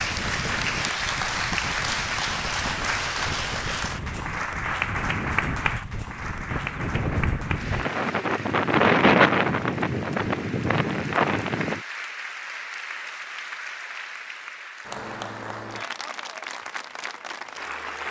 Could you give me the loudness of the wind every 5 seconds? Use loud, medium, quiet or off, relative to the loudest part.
quiet, loud, loud, off.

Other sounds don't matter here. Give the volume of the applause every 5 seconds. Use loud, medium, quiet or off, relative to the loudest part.
loud, medium, medium, medium.